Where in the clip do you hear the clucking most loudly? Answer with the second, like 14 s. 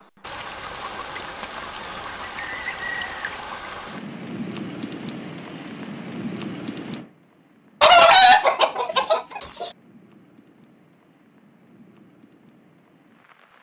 8 s.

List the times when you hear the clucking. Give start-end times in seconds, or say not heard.
1.8-3.4, 7.8-9.7.